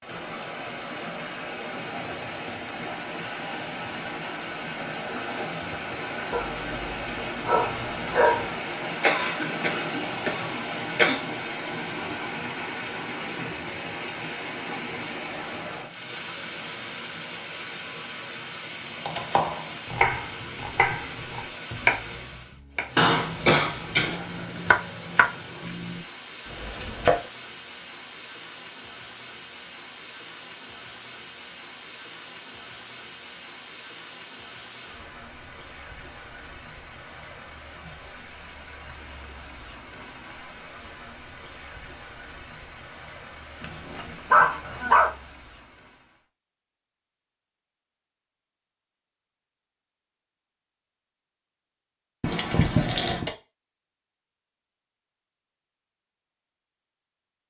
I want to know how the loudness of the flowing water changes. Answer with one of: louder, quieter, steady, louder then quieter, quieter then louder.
quieter.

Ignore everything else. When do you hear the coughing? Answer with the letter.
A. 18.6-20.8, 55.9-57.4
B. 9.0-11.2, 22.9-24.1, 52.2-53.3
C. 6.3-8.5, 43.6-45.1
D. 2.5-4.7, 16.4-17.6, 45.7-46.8
B.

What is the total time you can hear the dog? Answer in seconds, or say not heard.
4 s.